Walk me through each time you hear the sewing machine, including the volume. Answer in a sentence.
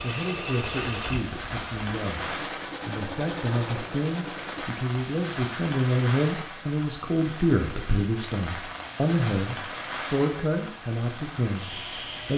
You can hear the sewing machine from 0.0 to 4.7 s, getting quieter then louder.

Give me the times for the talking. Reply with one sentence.
The talking can be heard from 0.0 to 12.3 s.